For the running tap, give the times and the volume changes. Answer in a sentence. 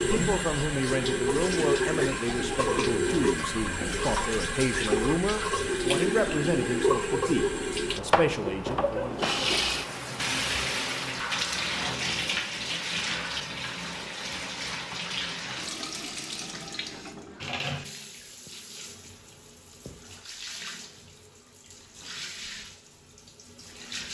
You can hear the running tap from 0.0 to 24.0 s, getting quieter.